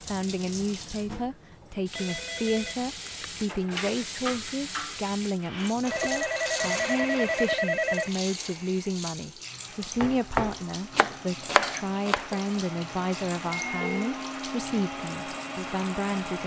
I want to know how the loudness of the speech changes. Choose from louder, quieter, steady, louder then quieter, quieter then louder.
steady.